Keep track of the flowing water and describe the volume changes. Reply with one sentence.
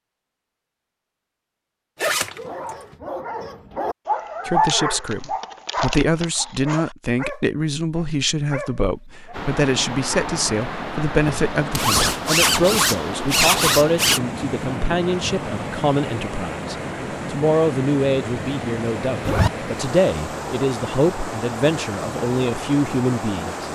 The volume of the flowing water stays about the same.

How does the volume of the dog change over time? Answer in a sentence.
The volume of the dog goes up, then down.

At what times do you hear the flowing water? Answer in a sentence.
The flowing water can be heard from 9.3 to 23.6 s.